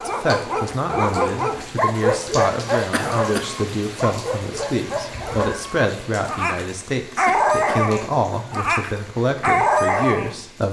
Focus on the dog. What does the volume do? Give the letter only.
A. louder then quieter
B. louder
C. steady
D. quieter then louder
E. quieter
D.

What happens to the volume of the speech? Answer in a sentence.
The volume of the speech stays about the same.